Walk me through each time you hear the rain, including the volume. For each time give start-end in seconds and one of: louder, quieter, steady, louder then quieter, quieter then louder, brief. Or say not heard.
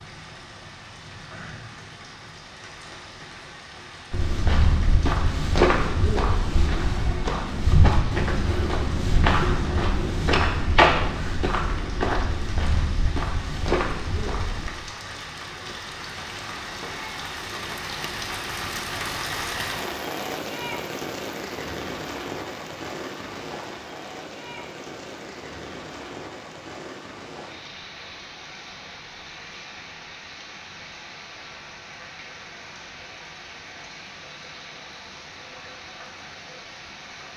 0.0-37.3 louder then quieter.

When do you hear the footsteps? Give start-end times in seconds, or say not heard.
4.1-14.7.